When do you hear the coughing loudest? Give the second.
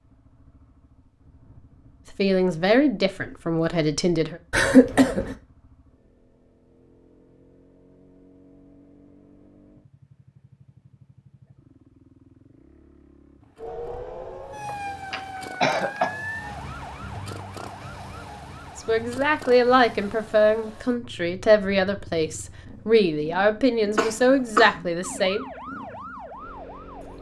5 s.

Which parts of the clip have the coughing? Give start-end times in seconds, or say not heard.
4.5-5.3, 14.7-16.1, 23.9-24.8.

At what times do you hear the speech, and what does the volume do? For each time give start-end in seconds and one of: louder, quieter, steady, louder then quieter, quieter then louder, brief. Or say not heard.
2.1-4.4 brief
18.8-25.4 steady.